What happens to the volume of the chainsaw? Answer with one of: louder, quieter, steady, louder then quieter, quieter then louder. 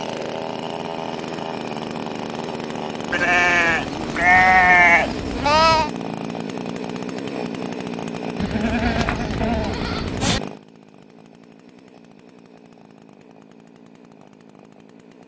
quieter.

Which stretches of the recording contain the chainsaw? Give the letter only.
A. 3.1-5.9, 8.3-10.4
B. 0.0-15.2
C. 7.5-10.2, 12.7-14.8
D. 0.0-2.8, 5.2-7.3
B.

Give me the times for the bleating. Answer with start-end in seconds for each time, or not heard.
3.1-5.9, 8.3-10.4.